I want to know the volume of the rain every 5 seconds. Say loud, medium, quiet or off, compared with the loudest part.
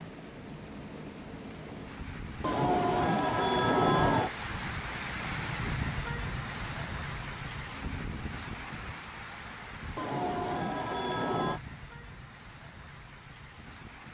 loud, loud, medium.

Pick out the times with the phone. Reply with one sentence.
You can hear the phone from 2.4 to 4.3 s and from 9.9 to 11.6 s.